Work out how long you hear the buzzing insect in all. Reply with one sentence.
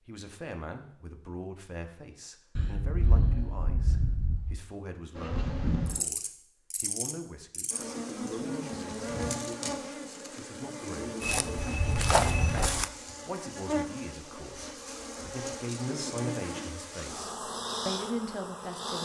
You can hear the buzzing insect for 14 seconds altogether.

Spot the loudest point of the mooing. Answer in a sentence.
The volume of the mooing peaks at 3 seconds.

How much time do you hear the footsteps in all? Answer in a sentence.
The footsteps can be heard for 2 seconds in total.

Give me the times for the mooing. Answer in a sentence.
The mooing can be heard from 2.5 to 4.5 s.